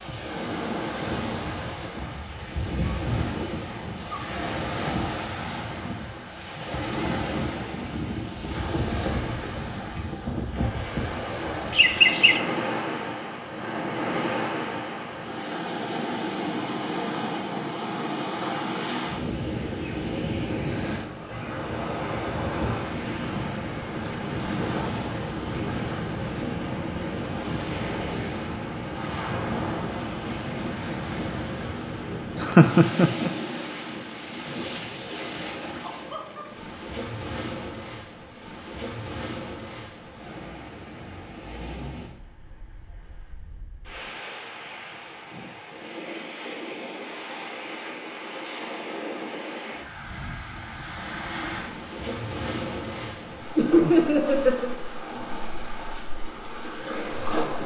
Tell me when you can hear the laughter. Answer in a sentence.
You can hear the laughter from 11.7 to 12.4 s, from 32.4 to 33.3 s and from 53.5 to 54.7 s.